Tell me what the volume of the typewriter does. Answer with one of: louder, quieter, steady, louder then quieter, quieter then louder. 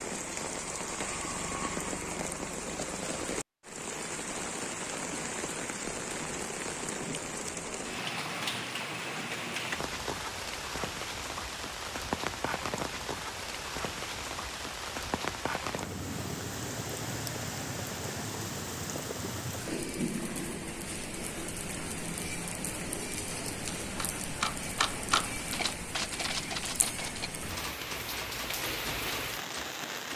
quieter.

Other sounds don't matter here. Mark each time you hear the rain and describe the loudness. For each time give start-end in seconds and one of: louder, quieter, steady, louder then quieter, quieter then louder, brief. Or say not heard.
0.0-30.1 steady.